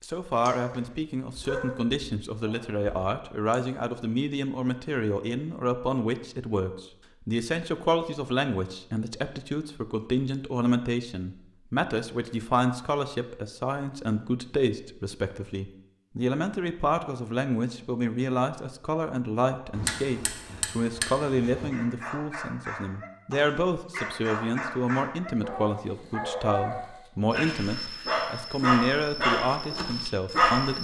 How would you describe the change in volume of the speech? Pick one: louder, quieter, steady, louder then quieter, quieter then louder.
steady.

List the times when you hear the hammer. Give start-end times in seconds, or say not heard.
19.7-21.7.